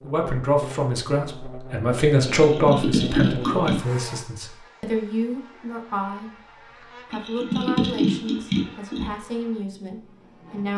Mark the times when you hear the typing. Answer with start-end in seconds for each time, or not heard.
2.2-3.8, 7.1-9.1.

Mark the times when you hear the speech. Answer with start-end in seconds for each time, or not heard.
0.0-6.3, 7.1-10.7.